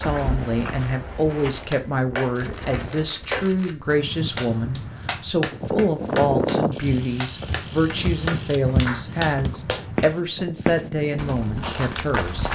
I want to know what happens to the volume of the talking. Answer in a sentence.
The volume of the talking stays about the same.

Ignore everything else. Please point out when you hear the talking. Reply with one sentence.
The talking can be heard from 0.0 to 12.5 s.